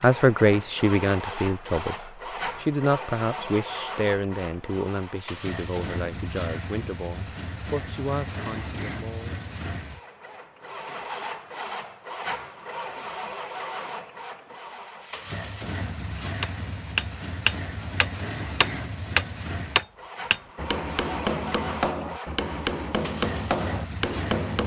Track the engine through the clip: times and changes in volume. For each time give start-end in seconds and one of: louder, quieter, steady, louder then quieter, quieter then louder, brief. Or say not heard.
0.0-24.6 steady.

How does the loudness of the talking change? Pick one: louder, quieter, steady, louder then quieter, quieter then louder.
quieter.